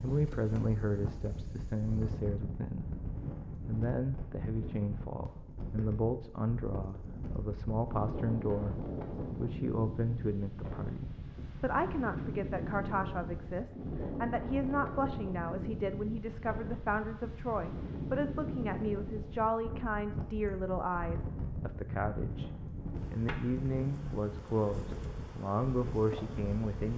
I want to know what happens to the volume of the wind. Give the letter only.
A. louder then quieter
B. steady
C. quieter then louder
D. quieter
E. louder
B.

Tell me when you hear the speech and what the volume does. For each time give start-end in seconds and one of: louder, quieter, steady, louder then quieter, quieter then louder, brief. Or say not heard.
0.0-26.9 steady.